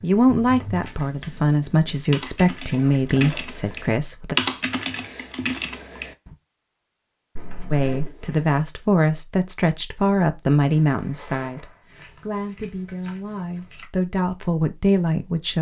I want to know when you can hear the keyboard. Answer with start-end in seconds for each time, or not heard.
0.0-6.3.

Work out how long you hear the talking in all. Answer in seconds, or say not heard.
12 s.